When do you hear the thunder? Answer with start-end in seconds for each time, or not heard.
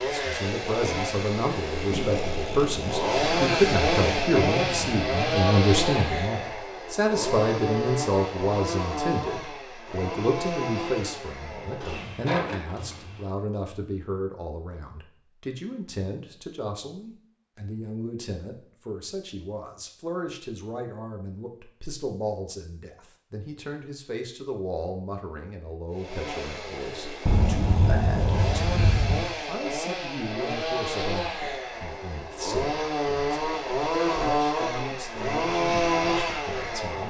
1.9-5.0, 27.2-29.2.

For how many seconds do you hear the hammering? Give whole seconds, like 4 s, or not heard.
not heard.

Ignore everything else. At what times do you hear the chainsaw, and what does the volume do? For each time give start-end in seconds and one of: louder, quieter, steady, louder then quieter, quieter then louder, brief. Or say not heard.
0.0-13.3 louder then quieter
25.9-37.0 louder.